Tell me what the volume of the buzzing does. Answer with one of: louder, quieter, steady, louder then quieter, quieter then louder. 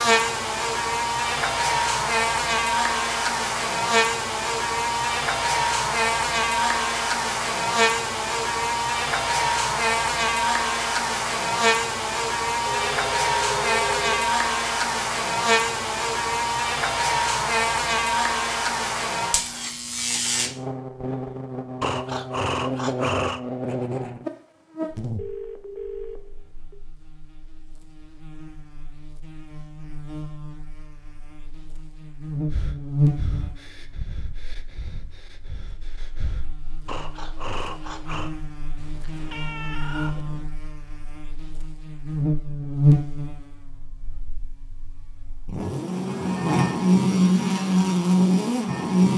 quieter then louder.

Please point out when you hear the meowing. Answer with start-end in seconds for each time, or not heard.
38.8-40.5.